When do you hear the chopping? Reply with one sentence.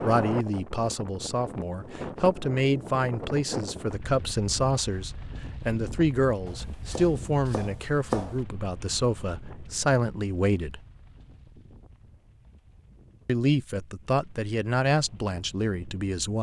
The chopping can be heard from 6.5 to 8.4 s.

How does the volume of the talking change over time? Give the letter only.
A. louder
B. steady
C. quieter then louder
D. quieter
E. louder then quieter
B.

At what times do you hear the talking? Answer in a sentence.
You can hear the talking from 0.0 to 10.8 s and from 13.2 to 16.3 s.